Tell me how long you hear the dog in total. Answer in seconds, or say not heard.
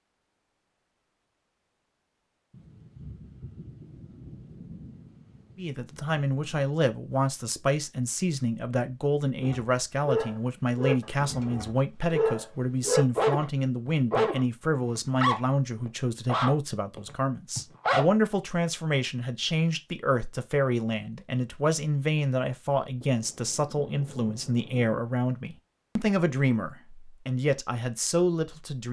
9 s.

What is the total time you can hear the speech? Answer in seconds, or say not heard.
23 s.